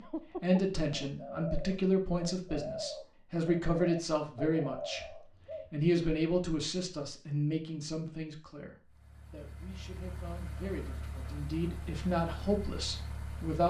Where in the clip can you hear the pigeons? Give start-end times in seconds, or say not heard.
0.0-5.7.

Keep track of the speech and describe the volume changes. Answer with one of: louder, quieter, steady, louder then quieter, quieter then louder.
quieter then louder.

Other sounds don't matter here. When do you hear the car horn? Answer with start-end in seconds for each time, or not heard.
not heard.